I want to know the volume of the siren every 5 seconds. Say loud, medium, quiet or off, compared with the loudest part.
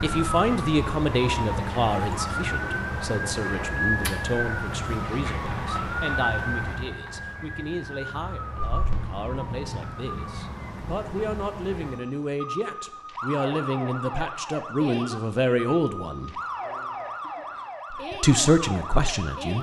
loud, loud, medium, medium.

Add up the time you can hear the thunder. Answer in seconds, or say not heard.
3 s.